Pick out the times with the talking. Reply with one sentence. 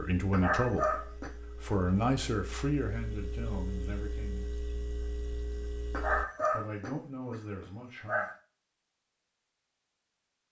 You can hear the talking from 0.0 to 4.5 s and from 6.5 to 8.2 s.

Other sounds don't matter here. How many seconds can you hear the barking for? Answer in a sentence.
The barking can be heard for 4 seconds in total.